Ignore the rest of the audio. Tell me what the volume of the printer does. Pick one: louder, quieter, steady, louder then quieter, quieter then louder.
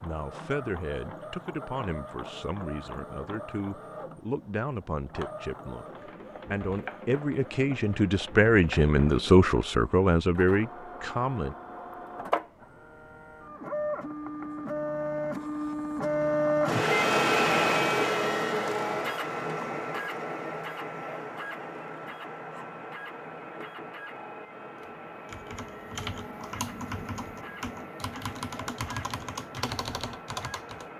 louder then quieter.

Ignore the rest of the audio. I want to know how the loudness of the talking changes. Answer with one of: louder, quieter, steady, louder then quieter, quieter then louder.
louder.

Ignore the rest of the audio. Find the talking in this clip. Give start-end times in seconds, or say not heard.
0.0-11.6.